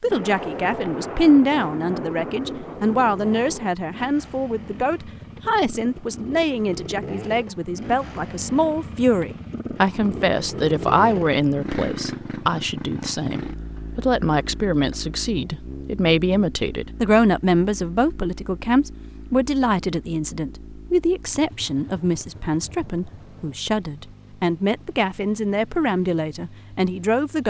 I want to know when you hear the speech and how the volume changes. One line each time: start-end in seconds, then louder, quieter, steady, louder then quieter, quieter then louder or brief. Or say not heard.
0.0-27.4 steady.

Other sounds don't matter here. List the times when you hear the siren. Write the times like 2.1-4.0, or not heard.
not heard.